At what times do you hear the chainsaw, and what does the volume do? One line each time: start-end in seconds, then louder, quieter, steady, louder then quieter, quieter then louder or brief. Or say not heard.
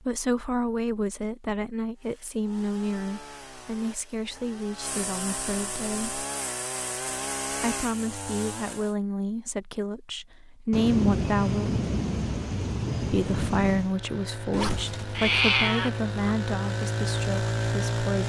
1.9-8.9 louder
13.7-18.2 louder.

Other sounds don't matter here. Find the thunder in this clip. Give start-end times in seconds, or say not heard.
10.7-13.9.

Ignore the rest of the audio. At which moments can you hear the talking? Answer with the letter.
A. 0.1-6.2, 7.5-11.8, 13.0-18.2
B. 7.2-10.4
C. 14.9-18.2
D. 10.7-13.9
A.